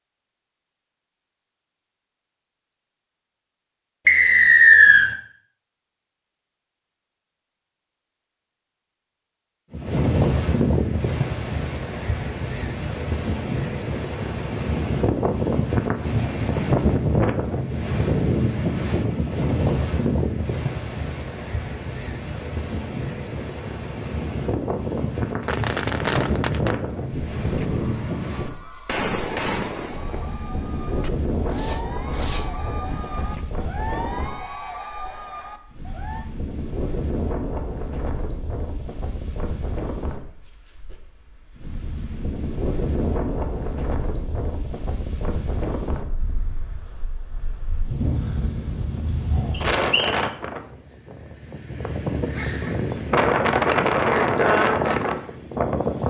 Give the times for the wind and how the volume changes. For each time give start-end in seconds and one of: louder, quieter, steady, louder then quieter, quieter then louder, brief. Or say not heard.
9.7-56.0 quieter then louder.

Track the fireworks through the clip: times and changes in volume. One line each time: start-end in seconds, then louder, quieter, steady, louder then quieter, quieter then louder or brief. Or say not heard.
25.4-28.1 brief
28.9-33.5 quieter then louder.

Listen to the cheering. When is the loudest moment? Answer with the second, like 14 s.
34 s.